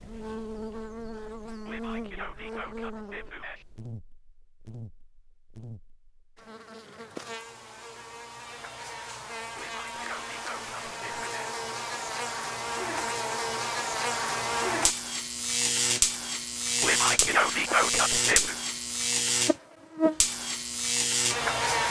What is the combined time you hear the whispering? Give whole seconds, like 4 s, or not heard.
6 s.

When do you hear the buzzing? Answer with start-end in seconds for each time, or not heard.
0.0-21.8.